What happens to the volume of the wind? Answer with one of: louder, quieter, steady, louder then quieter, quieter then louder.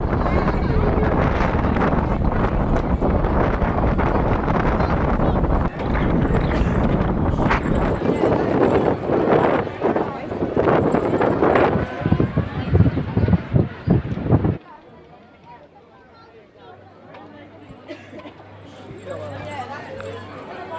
steady.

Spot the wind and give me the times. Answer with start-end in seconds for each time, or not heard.
0.0-14.6.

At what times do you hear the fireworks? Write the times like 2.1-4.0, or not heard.
not heard.